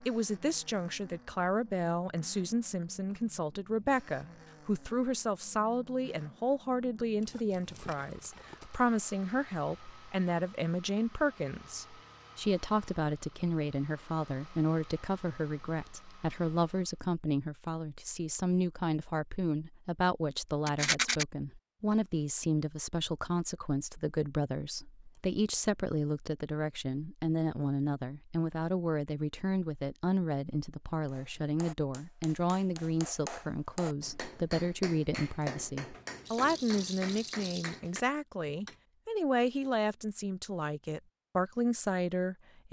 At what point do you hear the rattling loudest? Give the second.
21 s.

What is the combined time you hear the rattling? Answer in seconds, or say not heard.
4 s.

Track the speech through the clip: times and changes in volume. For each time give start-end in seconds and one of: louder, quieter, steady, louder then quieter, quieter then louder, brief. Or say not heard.
0.0-42.6 steady.